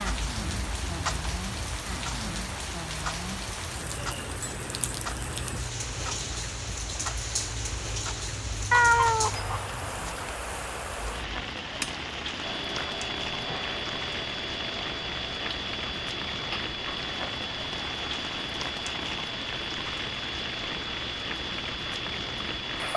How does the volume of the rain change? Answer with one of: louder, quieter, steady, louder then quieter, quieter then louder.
steady.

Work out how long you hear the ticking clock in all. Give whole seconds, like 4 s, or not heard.
23 s.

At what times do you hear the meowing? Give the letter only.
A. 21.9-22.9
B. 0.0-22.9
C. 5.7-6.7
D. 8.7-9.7
D.